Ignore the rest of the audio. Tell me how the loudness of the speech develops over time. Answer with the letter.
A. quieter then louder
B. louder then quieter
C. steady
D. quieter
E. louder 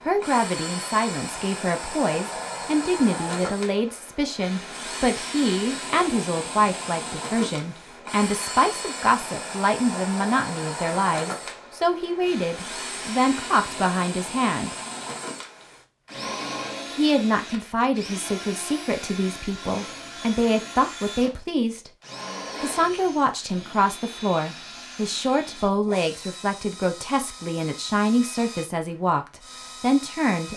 C.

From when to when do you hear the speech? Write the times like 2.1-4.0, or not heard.
0.1-14.7, 16.9-21.9, 22.6-30.5.